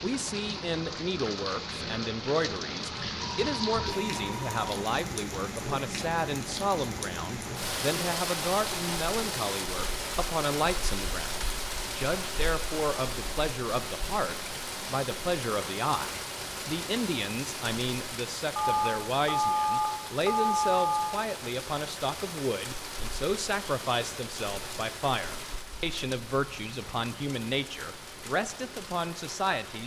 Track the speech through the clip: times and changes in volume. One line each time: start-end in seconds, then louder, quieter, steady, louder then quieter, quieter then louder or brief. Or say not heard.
0.0-29.8 steady.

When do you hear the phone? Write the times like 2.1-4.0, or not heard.
3.2-4.6, 18.6-21.1.